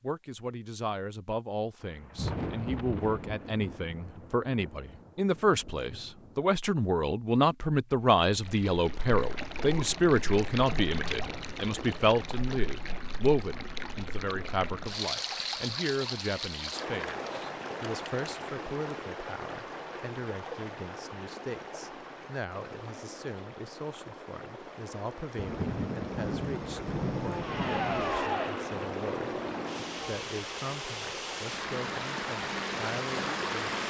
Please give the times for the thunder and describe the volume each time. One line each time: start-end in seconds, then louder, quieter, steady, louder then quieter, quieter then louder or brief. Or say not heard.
1.8-6.5 quieter
25.4-28.3 brief.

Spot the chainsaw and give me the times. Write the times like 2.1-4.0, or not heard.
27.1-30.2.